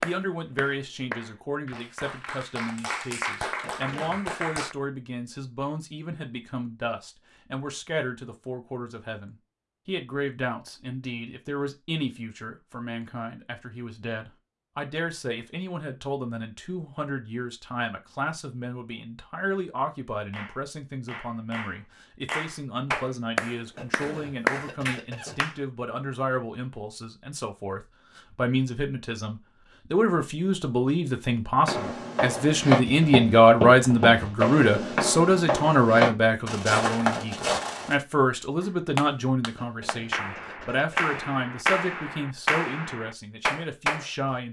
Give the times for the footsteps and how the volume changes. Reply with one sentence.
The footsteps can be heard from 31.6 to 38.0 s, at a steady volume.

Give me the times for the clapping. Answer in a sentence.
The clapping can be heard from 0.0 to 4.8 s, from 20.3 to 25.6 s and from 38.6 to 44.0 s.